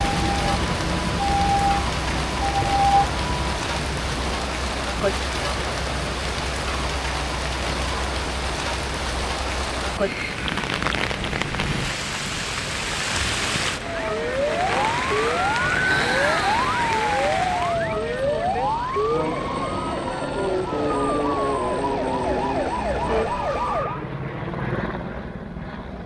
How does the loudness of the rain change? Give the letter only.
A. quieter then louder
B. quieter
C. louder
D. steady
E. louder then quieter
D.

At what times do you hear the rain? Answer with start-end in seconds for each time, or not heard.
0.0-17.9.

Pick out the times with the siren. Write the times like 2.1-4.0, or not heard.
0.0-3.7, 13.8-24.1.